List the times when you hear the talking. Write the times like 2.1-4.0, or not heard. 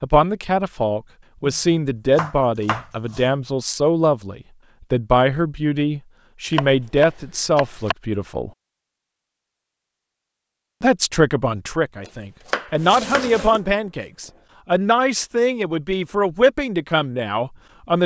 0.0-8.5, 10.8-18.0.